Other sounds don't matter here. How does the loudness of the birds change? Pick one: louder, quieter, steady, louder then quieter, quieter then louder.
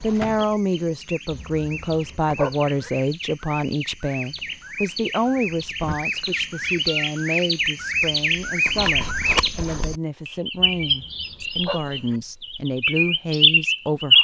louder.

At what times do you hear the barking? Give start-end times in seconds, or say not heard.
1.3-2.9, 10.6-12.2.